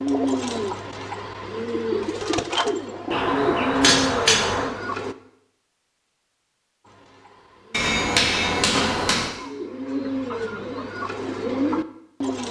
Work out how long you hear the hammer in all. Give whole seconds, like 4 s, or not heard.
3 s.